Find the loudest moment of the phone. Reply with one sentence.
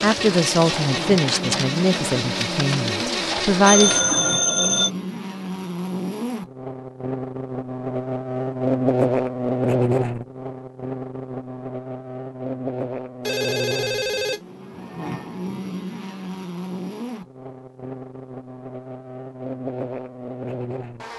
The volume of the phone peaks at 4 seconds.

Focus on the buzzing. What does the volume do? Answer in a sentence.
The loudness of the buzzing goes up, then down.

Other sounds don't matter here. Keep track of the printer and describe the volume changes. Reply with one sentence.
The volume of the printer stays about the same.